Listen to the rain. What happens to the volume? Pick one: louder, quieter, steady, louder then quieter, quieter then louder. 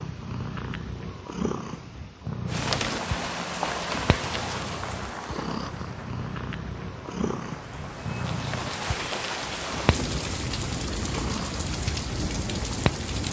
quieter then louder.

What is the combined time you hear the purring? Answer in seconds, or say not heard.
13 s.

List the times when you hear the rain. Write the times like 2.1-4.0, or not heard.
2.5-13.2.